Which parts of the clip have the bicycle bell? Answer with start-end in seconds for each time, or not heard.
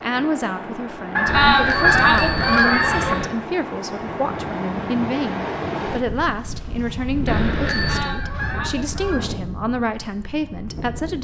1.2-3.3, 7.2-8.0.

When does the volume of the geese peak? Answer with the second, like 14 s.
2 s.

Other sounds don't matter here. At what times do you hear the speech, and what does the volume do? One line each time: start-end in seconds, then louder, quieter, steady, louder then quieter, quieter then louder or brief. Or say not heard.
0.0-11.1 steady.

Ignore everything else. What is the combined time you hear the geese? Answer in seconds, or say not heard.
4 s.